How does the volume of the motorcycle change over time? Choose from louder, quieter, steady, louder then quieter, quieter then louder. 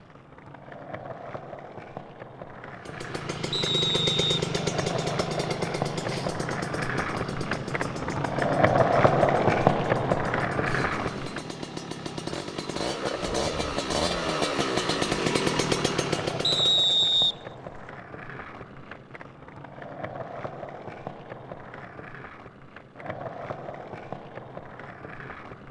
quieter then louder.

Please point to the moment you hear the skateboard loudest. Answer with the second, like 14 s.
9 s.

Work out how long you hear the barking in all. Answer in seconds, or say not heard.
not heard.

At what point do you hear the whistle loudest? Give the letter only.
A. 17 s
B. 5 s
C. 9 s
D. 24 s
A.